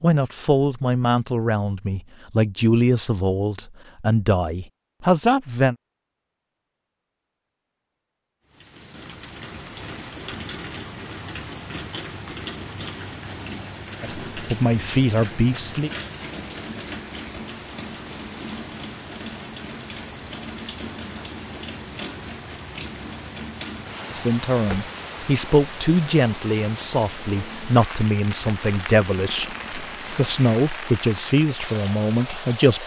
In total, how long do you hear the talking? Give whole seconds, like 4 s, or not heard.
16 s.